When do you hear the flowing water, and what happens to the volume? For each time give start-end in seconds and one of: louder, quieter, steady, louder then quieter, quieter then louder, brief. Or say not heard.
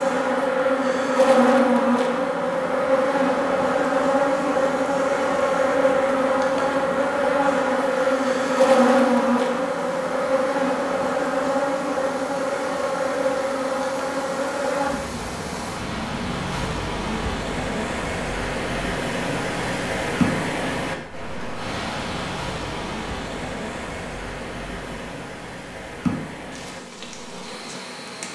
7.8-28.3 louder then quieter.